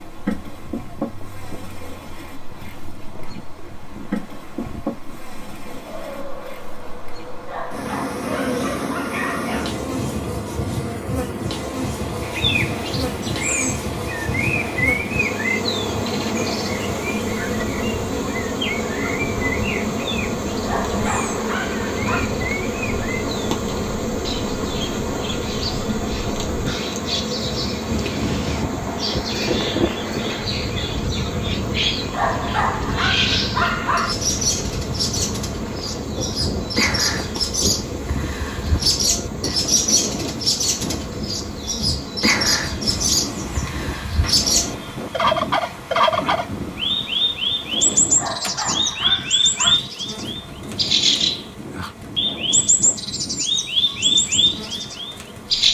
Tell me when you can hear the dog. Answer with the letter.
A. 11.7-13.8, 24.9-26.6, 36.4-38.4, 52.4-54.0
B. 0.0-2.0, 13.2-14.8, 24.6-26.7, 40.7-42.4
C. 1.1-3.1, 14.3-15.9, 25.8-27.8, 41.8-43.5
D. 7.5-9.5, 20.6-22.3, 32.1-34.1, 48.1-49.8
D.